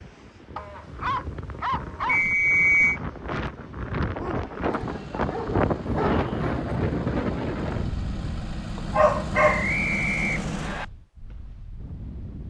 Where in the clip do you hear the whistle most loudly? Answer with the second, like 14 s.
3 s.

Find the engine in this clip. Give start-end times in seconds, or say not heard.
4.6-10.9.